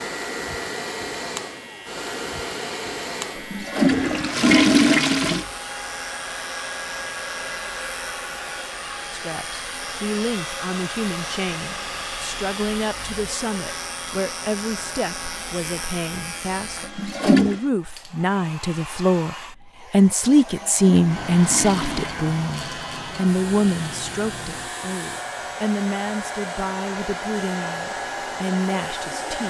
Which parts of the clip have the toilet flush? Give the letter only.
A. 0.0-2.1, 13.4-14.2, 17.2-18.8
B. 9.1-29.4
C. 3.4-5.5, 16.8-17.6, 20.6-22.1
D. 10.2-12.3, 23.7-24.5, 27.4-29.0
C.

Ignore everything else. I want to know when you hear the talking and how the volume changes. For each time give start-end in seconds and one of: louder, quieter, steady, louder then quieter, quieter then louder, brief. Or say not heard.
9.1-29.4 louder then quieter.